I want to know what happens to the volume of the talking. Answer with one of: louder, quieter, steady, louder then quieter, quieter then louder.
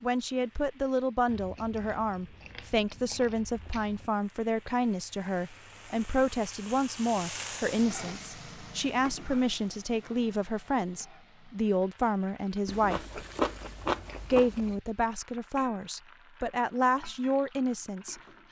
steady.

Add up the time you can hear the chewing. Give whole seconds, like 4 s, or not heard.
5 s.